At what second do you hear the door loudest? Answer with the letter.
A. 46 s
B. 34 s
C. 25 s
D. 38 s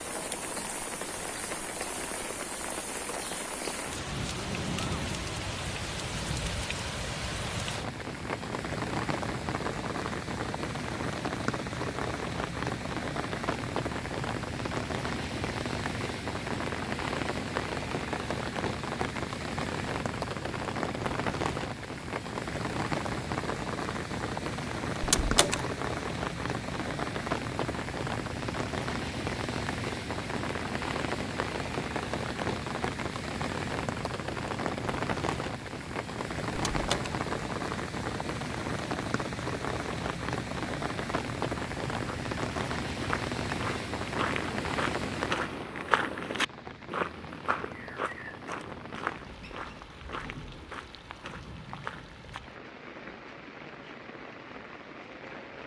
C.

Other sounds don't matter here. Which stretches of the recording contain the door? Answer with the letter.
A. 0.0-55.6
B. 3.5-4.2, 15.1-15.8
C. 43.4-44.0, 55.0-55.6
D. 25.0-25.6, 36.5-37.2
D.